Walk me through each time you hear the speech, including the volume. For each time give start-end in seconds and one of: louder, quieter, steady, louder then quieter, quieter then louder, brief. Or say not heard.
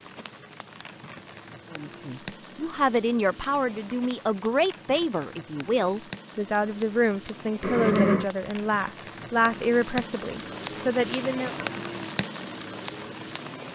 1.7-11.6 steady.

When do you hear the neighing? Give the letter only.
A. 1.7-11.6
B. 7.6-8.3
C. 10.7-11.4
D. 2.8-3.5
B.